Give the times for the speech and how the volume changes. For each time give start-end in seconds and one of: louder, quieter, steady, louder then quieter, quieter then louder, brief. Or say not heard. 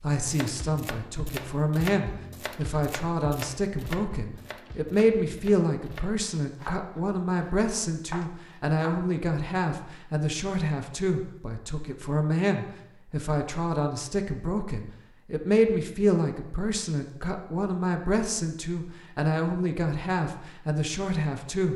0.0-21.7 steady.